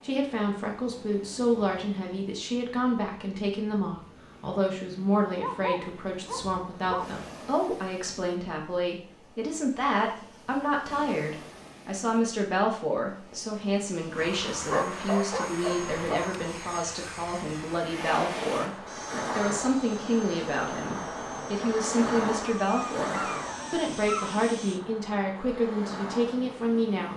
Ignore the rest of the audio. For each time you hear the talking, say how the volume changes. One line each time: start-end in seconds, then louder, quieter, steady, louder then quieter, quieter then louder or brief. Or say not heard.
0.0-27.1 steady.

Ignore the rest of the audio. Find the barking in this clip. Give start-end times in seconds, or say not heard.
5.3-7.1, 14.7-16.4, 22.4-24.4.